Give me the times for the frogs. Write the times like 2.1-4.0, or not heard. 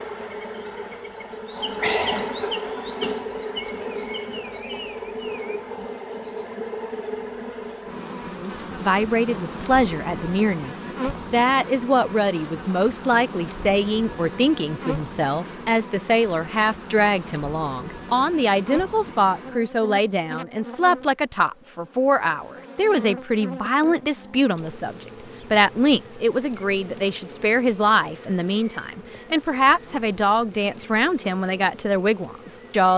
not heard.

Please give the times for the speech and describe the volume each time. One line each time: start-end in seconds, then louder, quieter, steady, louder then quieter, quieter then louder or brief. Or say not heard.
8.3-32.9 steady.